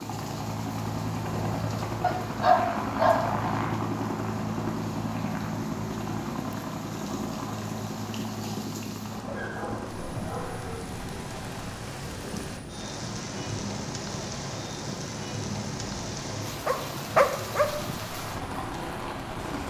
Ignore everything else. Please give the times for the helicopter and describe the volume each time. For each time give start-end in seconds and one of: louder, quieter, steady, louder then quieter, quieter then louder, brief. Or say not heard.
0.0-19.6 quieter.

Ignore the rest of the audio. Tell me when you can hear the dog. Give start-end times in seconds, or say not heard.
2.0-3.4, 9.1-10.8, 16.6-17.7.